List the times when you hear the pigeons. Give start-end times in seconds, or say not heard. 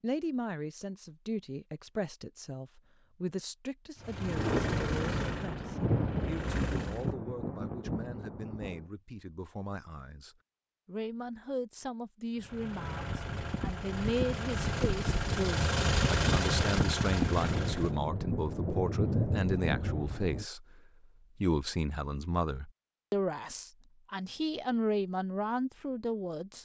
not heard.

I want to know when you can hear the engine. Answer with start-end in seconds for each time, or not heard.
4.0-7.1, 12.3-18.0.